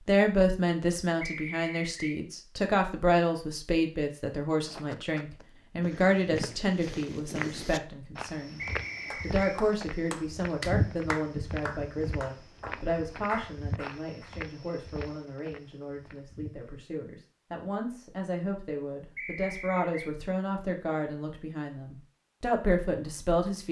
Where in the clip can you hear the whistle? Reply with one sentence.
The whistle can be heard from 1.2 to 2.2 s, from 8.6 to 9.6 s and from 19.1 to 20.1 s.